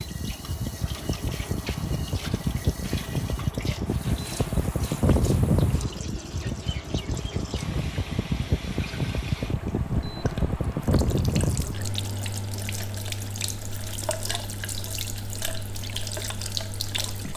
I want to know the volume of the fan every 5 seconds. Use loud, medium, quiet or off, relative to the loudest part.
loud, loud, loud, quiet.